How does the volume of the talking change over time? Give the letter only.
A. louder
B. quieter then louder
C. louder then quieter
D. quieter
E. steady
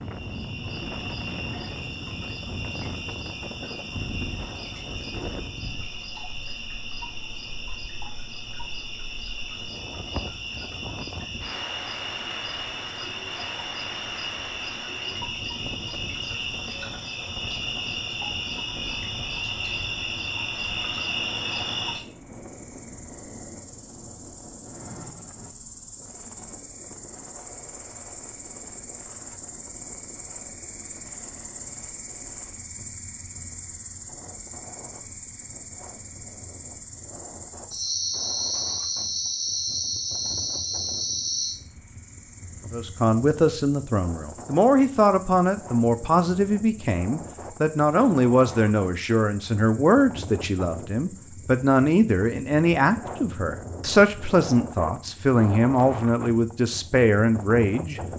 E.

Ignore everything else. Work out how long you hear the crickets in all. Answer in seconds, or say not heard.
58 s.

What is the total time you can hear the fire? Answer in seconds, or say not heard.
not heard.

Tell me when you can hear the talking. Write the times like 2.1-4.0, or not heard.
42.7-58.0.